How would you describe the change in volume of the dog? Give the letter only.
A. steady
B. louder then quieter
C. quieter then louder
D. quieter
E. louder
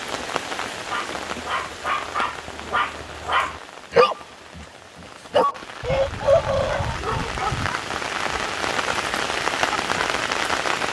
B.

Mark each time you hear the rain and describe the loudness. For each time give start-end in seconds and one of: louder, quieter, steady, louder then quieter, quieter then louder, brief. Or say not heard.
0.0-10.8 quieter then louder.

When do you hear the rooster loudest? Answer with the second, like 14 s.
6 s.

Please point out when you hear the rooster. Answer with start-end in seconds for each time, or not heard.
5.8-7.7.